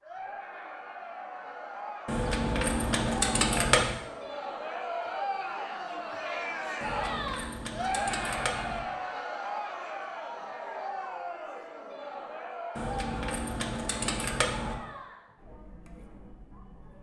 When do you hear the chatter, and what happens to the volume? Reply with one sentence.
You can hear the chatter from 0.0 to 16.9 s, getting louder then quieter.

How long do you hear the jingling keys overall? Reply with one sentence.
The jingling keys can be heard for 6 seconds in total.